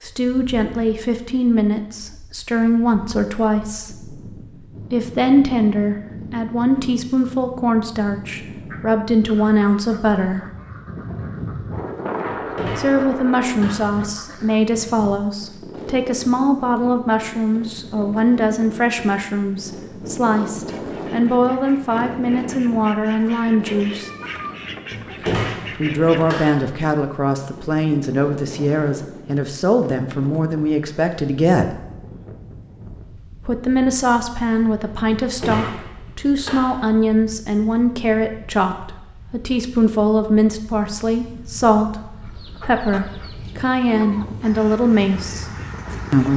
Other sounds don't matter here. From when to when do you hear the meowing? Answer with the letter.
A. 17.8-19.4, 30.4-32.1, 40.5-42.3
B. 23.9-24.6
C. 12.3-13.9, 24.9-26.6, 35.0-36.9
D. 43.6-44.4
B.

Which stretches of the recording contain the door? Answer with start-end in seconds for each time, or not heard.
12.3-13.9, 24.9-26.6, 35.0-36.9.